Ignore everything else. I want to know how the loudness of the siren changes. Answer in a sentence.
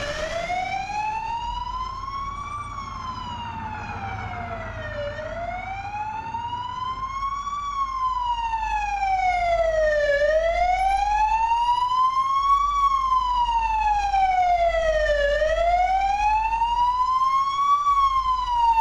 The loudness of the siren goes up.